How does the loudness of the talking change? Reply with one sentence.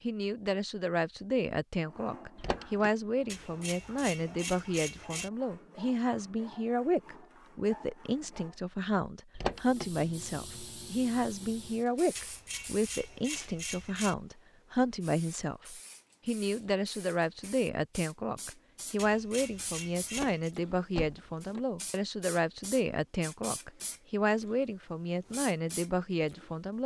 The loudness of the talking stays about the same.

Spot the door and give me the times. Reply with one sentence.
You can hear the door from 2.4 to 2.9 s, from 9.3 to 10.1 s and from 20.1 to 21.6 s.